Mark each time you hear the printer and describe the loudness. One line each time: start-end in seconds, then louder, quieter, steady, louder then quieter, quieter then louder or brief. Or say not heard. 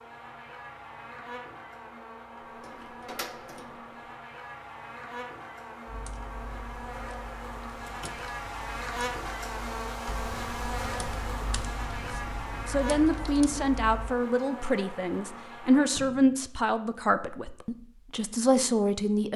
not heard.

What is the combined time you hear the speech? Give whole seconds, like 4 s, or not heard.
7 s.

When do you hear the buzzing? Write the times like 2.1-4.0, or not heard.
0.0-15.9.